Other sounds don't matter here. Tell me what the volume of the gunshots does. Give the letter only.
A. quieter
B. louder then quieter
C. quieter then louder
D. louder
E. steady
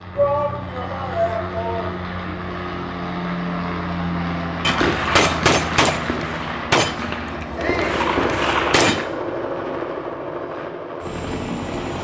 C.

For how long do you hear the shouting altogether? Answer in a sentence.
You can hear the shouting for 2 seconds altogether.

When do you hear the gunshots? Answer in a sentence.
You can hear the gunshots from 4.6 to 9.1 s.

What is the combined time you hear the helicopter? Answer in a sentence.
The helicopter can be heard for 12 seconds in total.